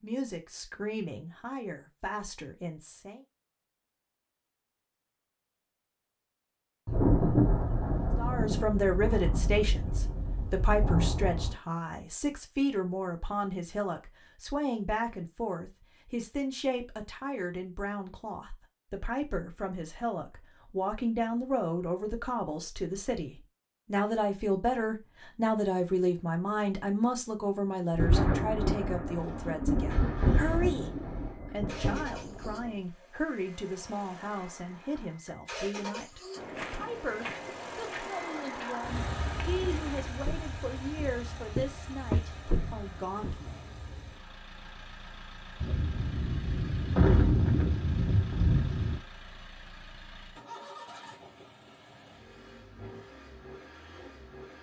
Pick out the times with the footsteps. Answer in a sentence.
The footsteps can be heard from 36.4 to 43.4 s.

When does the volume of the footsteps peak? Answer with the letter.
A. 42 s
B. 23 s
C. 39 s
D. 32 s
A.